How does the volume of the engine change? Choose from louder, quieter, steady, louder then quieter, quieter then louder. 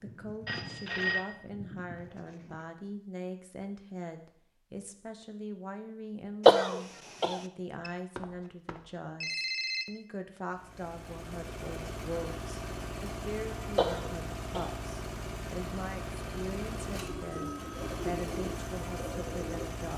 steady.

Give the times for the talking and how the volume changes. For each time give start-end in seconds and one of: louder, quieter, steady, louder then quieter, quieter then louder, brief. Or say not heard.
0.0-19.9 steady.